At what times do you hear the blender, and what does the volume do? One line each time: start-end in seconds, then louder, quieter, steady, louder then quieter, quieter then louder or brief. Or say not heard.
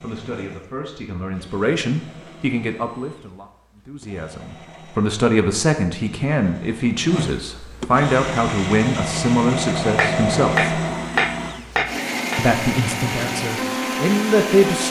0.0-14.8 louder.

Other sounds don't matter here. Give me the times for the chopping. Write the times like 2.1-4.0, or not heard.
9.9-12.4.